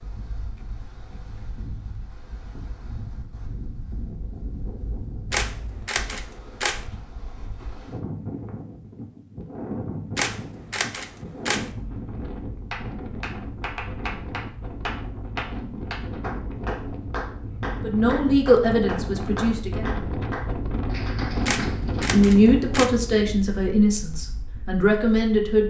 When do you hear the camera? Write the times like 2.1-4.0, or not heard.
5.3-6.8, 10.2-11.7, 21.4-22.9.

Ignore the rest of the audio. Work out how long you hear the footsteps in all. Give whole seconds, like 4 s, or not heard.
not heard.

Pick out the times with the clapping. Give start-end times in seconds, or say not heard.
12.7-22.1.